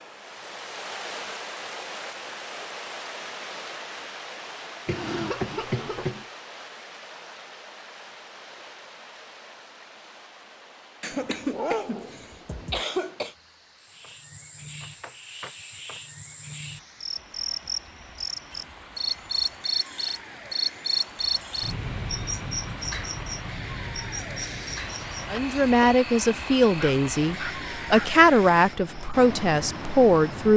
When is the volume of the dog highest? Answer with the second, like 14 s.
12 s.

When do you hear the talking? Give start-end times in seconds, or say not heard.
25.3-30.5.